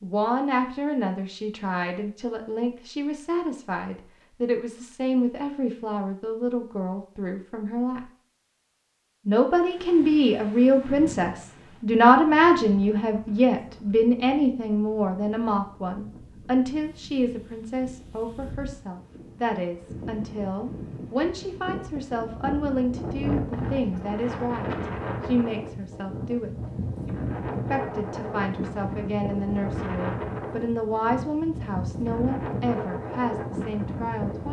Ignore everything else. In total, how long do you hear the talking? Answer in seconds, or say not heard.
32 s.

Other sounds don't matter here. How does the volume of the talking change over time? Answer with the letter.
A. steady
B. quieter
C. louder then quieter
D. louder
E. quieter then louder
C.